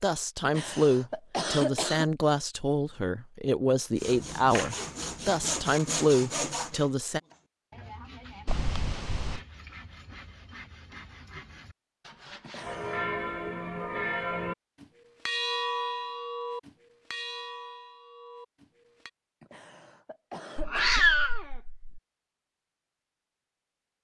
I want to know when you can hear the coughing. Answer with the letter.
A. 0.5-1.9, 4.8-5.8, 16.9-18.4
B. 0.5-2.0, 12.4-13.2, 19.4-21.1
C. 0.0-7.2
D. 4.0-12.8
B.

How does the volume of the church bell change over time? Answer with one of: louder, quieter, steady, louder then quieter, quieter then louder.
quieter.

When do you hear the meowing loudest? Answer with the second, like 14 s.
21 s.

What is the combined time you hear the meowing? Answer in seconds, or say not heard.
4 s.